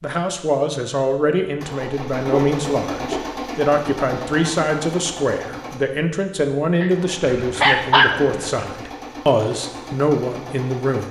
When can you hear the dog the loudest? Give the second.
8 s.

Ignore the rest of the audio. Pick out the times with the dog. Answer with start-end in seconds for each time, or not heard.
2.2-3.2, 6.8-8.7.